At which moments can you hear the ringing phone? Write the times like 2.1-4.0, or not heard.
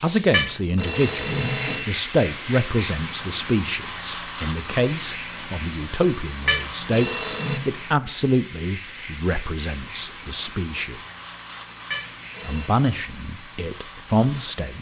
0.3-1.9, 6.5-7.6, 11.9-12.7.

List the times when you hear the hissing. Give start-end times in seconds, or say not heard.
0.0-14.7.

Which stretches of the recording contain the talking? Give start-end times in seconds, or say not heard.
0.0-11.0, 12.4-14.7.